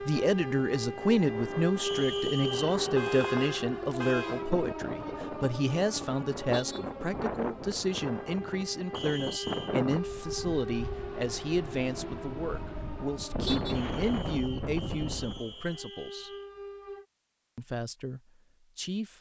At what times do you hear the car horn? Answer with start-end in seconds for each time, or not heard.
3.0-4.5, 6.5-6.9, 13.4-13.8.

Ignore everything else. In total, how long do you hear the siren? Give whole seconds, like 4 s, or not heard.
17 s.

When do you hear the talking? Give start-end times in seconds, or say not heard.
0.1-16.3, 17.6-19.1.